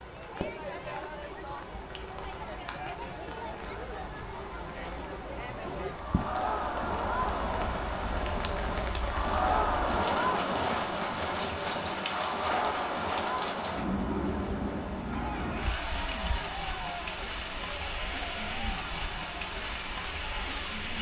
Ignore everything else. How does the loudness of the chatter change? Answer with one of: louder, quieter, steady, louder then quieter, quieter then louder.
louder then quieter.